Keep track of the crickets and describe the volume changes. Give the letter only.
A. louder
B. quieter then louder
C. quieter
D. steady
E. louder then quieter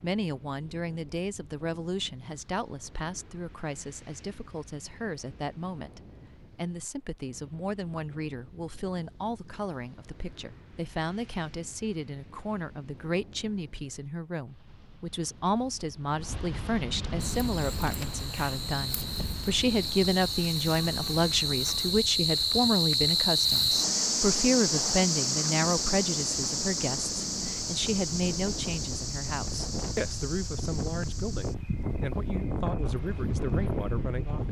E.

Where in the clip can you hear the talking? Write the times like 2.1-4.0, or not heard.
0.0-34.4.